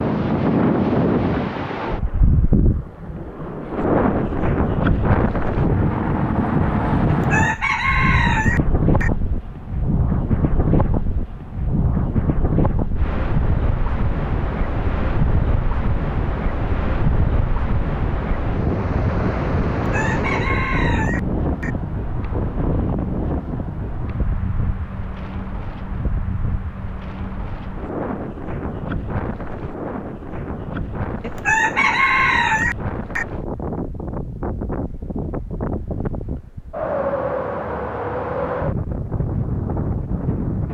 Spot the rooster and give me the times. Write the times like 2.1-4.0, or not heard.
7.0-9.1, 19.8-21.7, 31.2-33.2.